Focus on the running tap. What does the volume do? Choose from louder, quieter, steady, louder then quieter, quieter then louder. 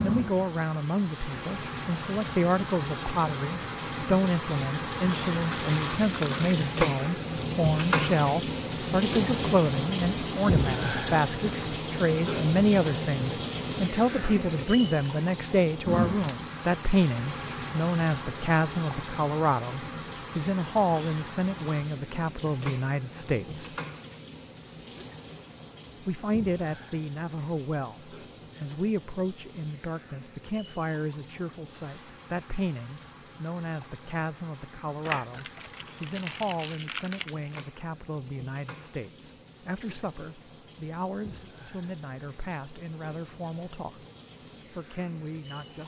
quieter.